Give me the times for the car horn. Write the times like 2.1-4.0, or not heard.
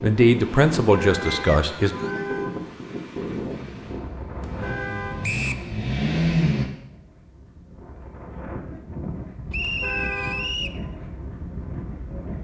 0.9-2.6, 4.4-5.3, 9.6-10.8.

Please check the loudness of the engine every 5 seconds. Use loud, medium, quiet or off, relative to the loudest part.
quiet, loud, off.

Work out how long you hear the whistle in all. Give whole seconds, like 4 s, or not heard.
3 s.